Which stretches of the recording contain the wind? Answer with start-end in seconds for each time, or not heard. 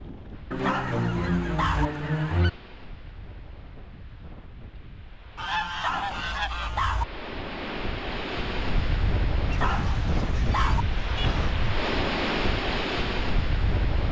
0.0-14.0.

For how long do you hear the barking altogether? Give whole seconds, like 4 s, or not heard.
4 s.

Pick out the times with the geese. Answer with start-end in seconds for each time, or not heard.
0.5-2.5, 5.3-6.8, 9.7-11.5.